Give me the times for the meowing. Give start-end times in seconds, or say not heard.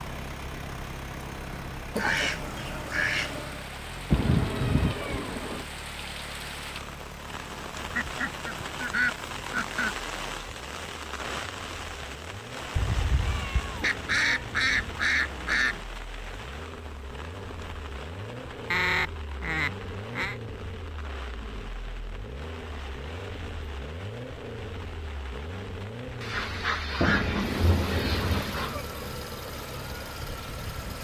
4.1-5.7, 12.8-14.9, 27.0-28.9.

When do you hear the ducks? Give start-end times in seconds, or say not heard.
1.9-3.6, 7.9-9.9, 13.8-15.8, 18.7-20.4, 26.2-28.8.